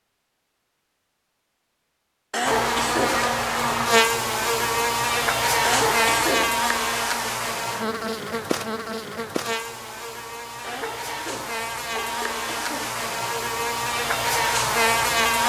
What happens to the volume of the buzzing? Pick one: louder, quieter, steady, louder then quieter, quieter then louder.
quieter then louder.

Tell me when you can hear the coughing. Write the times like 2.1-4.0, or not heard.
2.3-3.3, 5.6-6.7, 10.6-12.9.